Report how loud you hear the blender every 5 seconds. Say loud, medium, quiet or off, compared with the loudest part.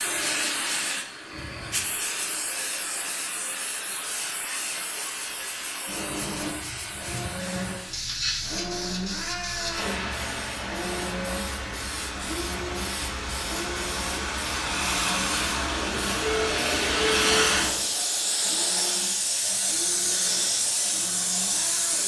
medium, loud, loud, medium, medium.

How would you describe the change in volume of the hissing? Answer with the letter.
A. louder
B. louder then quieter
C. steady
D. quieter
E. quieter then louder
A.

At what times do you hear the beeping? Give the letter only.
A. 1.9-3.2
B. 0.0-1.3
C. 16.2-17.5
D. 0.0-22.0
C.